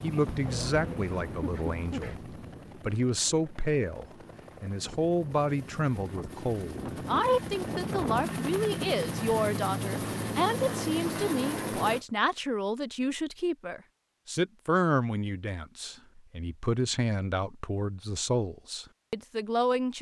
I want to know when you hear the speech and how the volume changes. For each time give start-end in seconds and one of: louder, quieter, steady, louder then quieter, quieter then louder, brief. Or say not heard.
0.0-19.9 steady.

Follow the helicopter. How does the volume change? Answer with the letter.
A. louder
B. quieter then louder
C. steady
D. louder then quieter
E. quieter
B.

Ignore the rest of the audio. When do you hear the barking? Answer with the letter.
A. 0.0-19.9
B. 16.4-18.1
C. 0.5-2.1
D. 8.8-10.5
C.